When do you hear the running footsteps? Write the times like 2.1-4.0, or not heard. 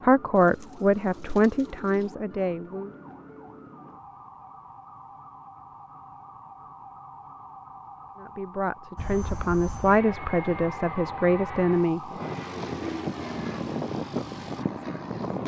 not heard.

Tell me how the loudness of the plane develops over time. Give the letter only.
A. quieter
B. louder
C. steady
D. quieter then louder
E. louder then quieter
B.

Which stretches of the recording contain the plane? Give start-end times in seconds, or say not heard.
8.9-15.4.